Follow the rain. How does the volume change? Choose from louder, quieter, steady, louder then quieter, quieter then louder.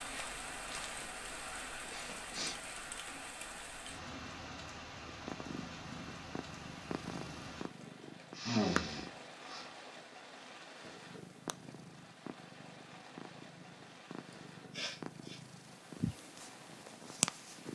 quieter.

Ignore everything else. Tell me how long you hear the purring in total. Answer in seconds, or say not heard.
11 s.